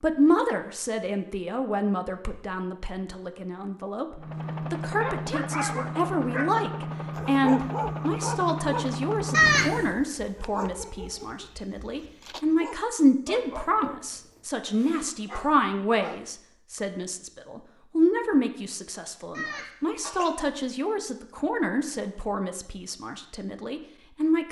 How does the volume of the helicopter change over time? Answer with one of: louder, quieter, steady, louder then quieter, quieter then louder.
steady.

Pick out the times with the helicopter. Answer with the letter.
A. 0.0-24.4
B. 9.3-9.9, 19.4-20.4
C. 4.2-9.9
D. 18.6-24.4
C.